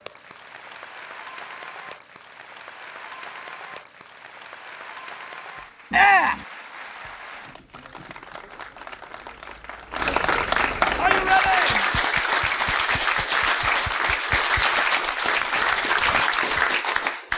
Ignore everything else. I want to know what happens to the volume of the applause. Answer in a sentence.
The volume of the applause goes up.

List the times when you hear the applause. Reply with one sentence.
The applause can be heard from 0.0 to 17.3 s.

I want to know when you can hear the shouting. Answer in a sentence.
You can hear the shouting from 5.9 to 6.5 s and from 10.9 to 11.8 s.